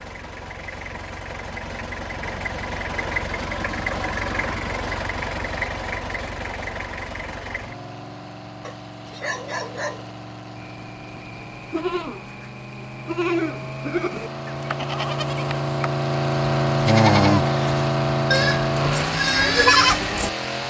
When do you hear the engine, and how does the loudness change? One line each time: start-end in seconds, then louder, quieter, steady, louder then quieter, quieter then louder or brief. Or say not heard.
0.0-20.6 quieter then louder.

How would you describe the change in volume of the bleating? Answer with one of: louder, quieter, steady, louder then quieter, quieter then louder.
louder.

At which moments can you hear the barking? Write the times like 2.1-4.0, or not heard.
8.6-10.2.